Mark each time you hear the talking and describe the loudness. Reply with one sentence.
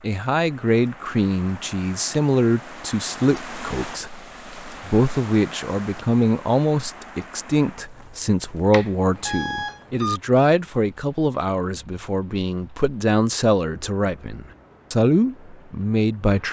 You can hear the talking from 0.0 to 16.4 s, at a steady volume.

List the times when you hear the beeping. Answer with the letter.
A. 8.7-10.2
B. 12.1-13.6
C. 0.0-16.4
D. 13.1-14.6
A.